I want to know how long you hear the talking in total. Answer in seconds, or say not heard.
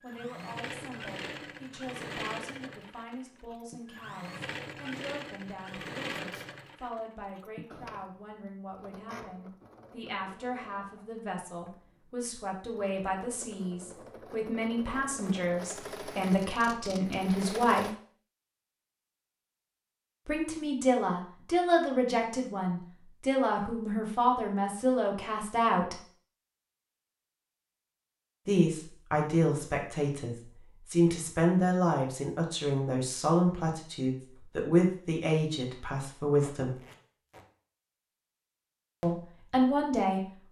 33 s.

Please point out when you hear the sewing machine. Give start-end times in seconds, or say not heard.
0.0-17.9.